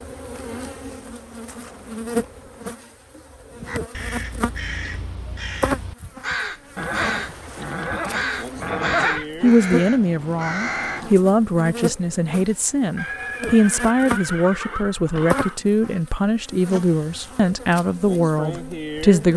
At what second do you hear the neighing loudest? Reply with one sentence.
The loudest moment of the neighing is at 9 seconds.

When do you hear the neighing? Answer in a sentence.
You can hear the neighing from 1.0 to 2.6 s, from 6.8 to 9.2 s and from 12.9 to 15.6 s.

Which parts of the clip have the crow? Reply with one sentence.
The crow can be heard from 3.5 to 11.2 s.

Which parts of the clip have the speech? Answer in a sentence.
You can hear the speech from 9.4 to 19.3 s.